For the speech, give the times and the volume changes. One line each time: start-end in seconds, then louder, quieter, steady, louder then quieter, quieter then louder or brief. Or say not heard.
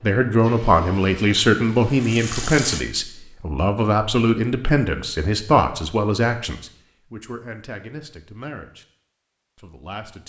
0.0-8.8 quieter
9.6-10.2 brief.